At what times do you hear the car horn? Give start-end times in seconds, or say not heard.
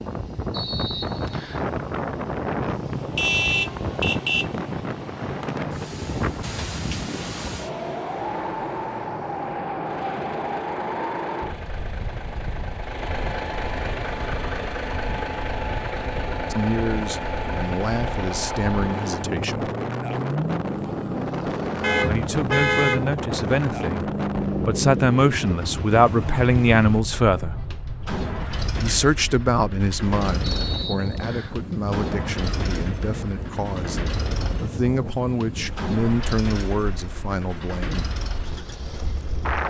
3.1-4.5, 21.8-23.1.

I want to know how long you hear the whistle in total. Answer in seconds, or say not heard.
2 s.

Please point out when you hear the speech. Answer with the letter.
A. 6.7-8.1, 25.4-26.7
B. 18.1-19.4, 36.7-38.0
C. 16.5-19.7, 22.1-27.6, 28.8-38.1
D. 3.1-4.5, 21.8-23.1
C.